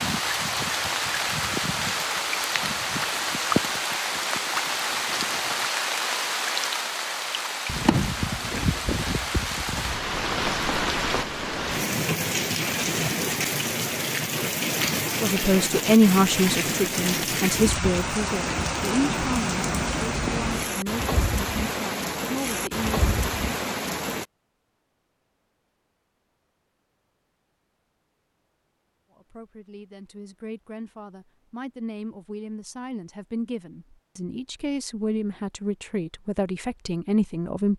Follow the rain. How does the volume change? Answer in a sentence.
The loudness of the rain stays about the same.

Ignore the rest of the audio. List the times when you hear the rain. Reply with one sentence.
You can hear the rain from 0.0 to 24.2 s.